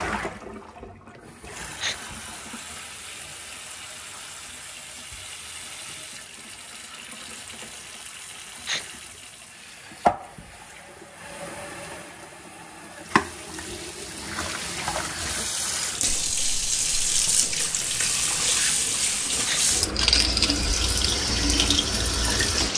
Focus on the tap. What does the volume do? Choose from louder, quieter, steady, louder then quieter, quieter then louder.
louder.